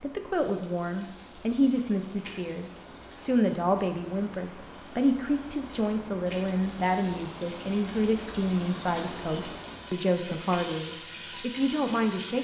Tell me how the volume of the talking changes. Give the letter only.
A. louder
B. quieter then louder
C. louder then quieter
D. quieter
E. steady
E.